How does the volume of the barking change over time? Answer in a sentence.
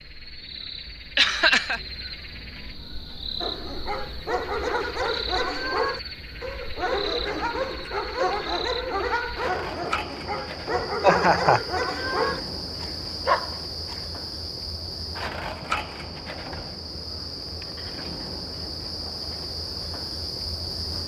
The volume of the barking stays about the same.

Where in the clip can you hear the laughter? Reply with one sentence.
You can hear the laughter from 1.1 to 1.8 s and from 11.0 to 11.6 s.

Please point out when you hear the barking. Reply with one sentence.
The barking can be heard from 3.4 to 14.1 s.